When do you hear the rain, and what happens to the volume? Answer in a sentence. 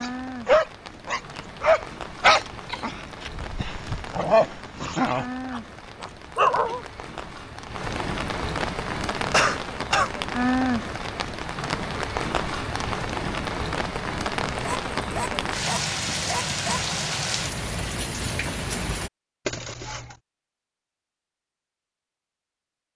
You can hear the rain from 0.0 to 19.1 s, getting louder.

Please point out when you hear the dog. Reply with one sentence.
The dog can be heard from 0.0 to 6.8 s and from 14.6 to 16.9 s.